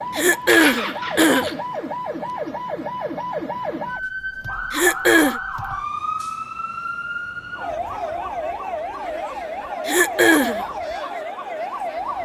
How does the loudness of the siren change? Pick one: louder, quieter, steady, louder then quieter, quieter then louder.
steady.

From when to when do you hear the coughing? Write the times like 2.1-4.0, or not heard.
0.1-1.6, 4.7-5.4, 9.8-10.7.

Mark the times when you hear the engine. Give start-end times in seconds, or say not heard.
0.2-1.7.